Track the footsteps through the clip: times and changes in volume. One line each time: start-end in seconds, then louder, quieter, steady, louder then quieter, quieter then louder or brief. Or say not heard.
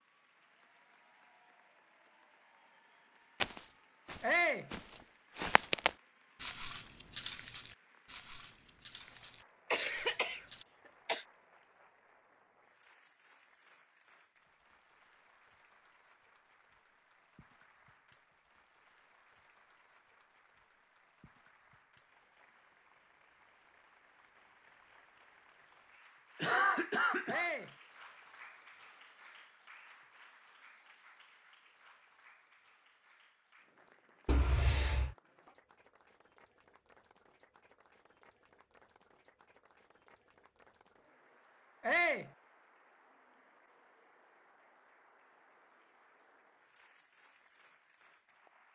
3.4-10.7 louder then quieter.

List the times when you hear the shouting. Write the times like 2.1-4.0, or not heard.
4.2-4.7, 27.2-27.7, 41.8-42.3.